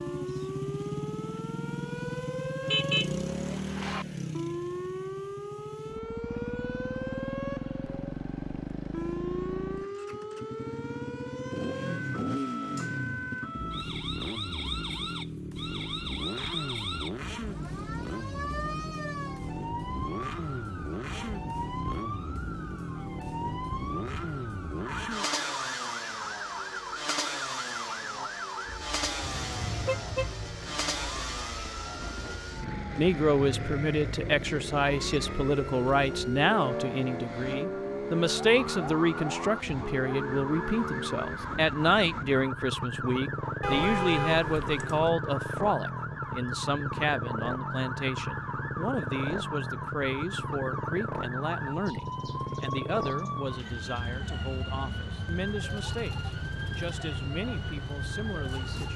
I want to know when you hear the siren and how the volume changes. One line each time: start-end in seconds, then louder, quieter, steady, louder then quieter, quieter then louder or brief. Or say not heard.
0.0-58.9 steady.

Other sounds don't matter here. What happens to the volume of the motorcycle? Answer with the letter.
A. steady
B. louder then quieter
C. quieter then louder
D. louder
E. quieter
A.